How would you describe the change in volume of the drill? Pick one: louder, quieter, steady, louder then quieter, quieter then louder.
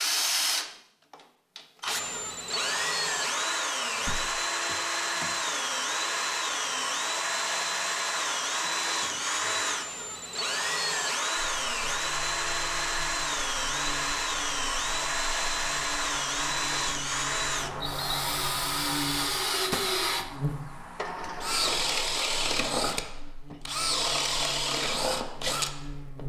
steady.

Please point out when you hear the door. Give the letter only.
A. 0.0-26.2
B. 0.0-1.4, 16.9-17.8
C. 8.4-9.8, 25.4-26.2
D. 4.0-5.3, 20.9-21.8
D.